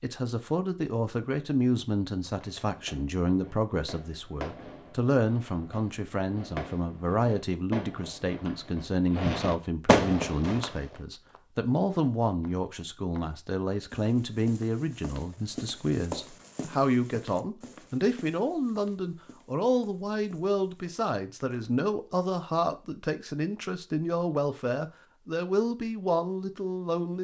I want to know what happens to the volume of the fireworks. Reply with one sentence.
The loudness of the fireworks goes up.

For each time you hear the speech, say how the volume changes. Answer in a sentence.
The speech can be heard from 0.0 to 27.1 s, at a steady volume.